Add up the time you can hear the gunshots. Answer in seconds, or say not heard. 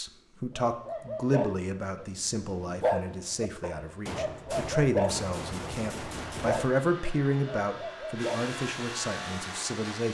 3 s.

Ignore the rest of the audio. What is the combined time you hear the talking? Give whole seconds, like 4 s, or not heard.
10 s.